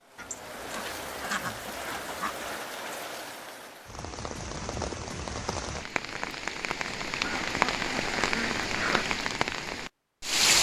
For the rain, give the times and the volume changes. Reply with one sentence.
You can hear the rain from 0.1 to 10.5 s, getting louder.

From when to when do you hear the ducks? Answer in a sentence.
You can hear the ducks from 0.1 to 2.6 s and from 7.2 to 9.1 s.